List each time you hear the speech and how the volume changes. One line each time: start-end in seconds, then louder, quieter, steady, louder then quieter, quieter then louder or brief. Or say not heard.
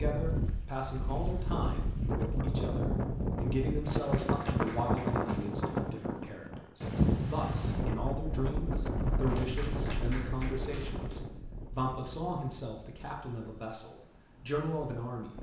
0.0-15.3 steady.